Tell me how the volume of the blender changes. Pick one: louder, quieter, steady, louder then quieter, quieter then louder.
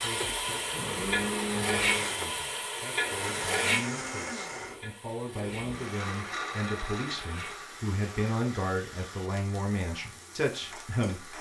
quieter.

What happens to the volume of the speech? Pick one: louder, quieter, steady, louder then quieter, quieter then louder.
louder.